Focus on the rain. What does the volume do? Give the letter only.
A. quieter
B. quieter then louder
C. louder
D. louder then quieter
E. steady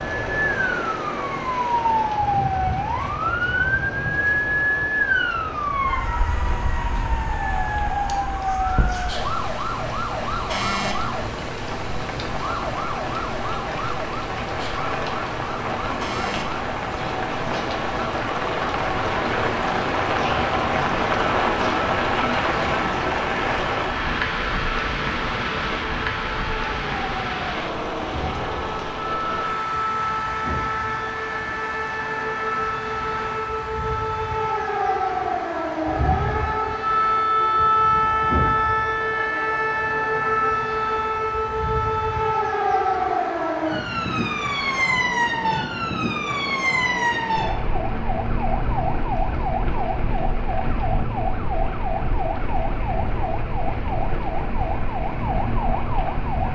D.